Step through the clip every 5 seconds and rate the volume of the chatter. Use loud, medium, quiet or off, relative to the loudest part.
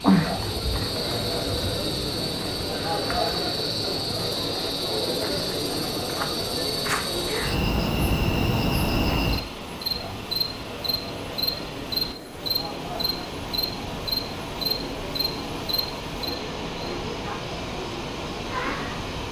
loud, loud, medium, medium.